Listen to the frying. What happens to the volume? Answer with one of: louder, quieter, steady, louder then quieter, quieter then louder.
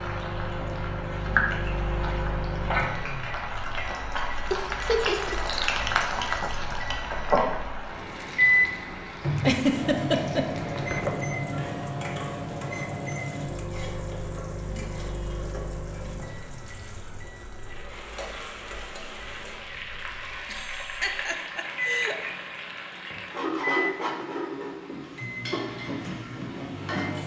quieter then louder.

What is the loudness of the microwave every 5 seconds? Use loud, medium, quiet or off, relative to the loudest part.
medium, loud, loud, quiet, medium, medium.